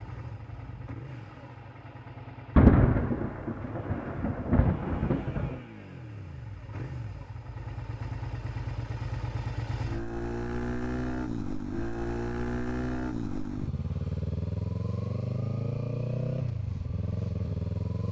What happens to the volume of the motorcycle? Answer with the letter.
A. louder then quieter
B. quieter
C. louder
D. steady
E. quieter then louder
C.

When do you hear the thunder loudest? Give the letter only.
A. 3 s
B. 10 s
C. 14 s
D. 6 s
A.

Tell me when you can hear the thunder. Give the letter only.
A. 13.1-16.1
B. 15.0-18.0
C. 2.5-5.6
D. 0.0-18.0
C.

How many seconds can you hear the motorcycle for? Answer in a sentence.
You can hear the motorcycle for 18 seconds altogether.